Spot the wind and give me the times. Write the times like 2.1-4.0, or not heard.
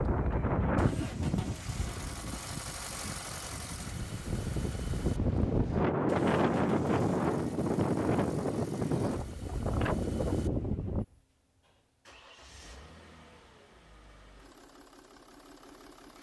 0.0-11.1.